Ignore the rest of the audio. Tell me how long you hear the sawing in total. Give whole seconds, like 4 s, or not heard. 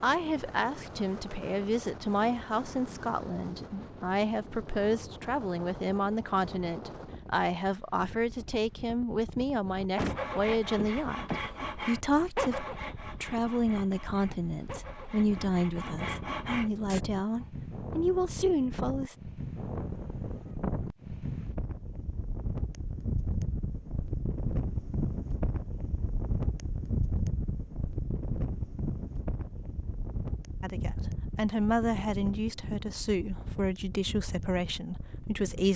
7 s.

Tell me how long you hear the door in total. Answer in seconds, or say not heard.
2 s.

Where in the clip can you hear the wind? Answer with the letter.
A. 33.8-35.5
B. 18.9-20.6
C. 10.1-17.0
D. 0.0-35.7
D.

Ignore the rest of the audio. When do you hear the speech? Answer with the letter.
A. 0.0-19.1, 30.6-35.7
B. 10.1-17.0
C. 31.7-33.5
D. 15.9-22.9
A.